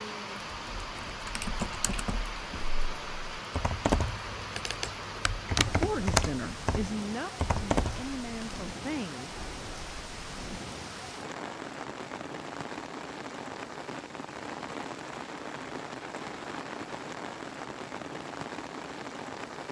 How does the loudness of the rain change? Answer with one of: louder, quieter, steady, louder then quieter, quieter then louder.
steady.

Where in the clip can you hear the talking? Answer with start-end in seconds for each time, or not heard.
5.6-9.3.